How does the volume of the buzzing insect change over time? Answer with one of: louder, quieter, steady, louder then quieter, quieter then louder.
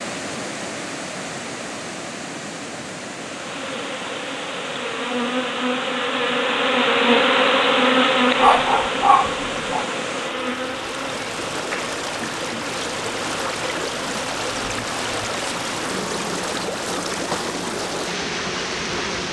louder then quieter.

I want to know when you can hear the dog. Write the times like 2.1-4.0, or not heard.
8.3-9.8.